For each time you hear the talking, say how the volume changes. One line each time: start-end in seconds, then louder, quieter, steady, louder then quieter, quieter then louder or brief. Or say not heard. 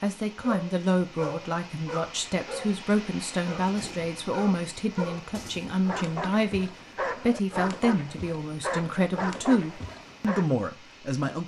0.0-11.4 steady.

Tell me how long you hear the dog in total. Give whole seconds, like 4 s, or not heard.
10 s.